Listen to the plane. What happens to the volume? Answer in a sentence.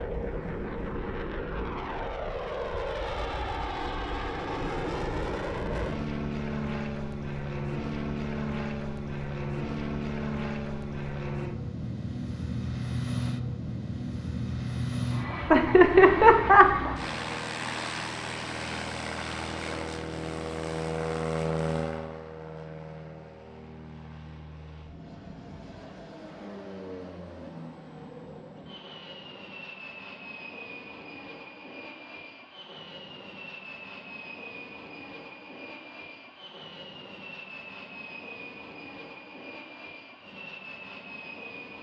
The volume of the plane goes down.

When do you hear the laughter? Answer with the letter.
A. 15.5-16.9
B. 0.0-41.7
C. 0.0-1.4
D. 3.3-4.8
A.